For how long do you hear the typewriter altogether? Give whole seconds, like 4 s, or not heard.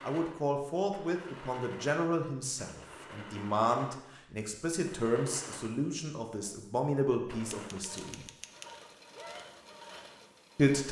2 s.